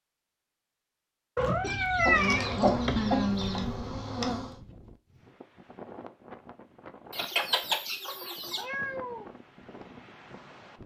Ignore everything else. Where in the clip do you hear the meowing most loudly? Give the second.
2 s.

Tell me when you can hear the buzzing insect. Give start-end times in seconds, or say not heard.
2.0-4.5.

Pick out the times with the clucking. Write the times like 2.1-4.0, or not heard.
1.6-3.7, 7.1-8.7.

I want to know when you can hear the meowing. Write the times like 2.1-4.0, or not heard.
1.4-3.0, 8.5-9.2.